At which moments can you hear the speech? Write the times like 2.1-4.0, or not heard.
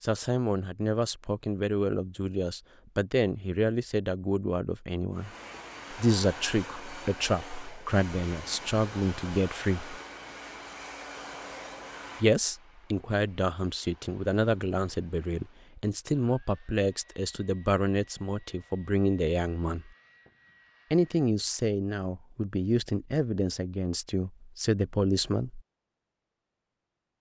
0.0-5.3, 5.9-9.9, 12.2-19.9, 20.9-25.6.